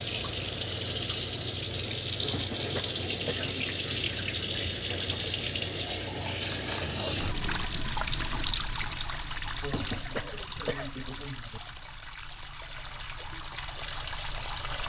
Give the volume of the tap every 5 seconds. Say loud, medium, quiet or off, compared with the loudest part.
loud, loud, medium.